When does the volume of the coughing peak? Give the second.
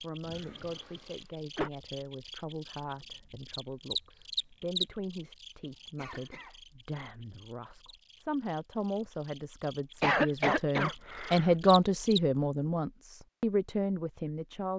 10 s.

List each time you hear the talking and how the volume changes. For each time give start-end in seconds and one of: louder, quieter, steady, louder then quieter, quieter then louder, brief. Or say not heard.
0.0-14.7 louder.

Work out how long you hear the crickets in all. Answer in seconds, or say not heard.
12 s.